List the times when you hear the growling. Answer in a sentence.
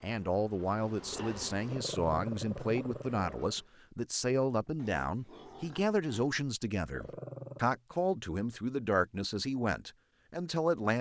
The growling can be heard from 1.6 to 3.5 s and from 6.9 to 7.8 s.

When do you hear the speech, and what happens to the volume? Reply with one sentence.
The speech can be heard from 0.0 to 10.9 s, at a steady volume.